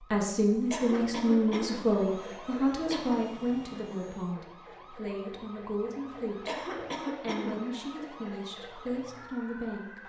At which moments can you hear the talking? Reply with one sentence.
You can hear the talking from 0.1 to 6.5 s and from 7.2 to 10.0 s.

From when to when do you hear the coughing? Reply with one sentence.
You can hear the coughing from 0.7 to 2.3 s, from 2.9 to 3.4 s and from 6.5 to 7.8 s.